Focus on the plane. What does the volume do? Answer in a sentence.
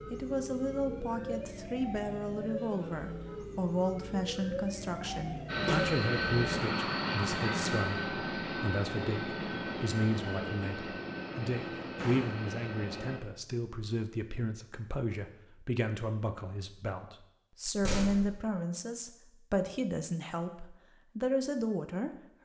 The loudness of the plane goes down.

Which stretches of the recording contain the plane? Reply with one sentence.
You can hear the plane from 5.5 to 13.2 s.